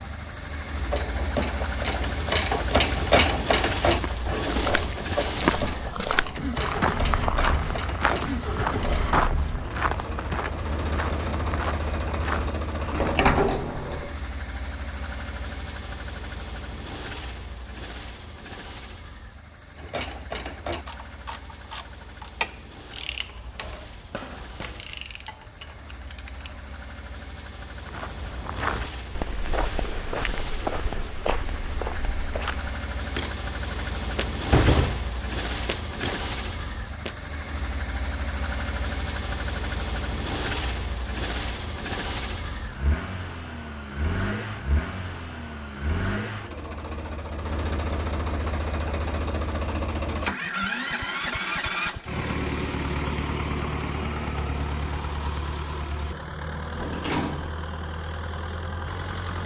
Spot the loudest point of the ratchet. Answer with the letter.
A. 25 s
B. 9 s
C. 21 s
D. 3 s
D.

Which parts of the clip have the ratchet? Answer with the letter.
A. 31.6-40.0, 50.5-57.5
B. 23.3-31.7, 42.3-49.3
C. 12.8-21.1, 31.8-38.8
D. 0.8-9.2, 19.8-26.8
D.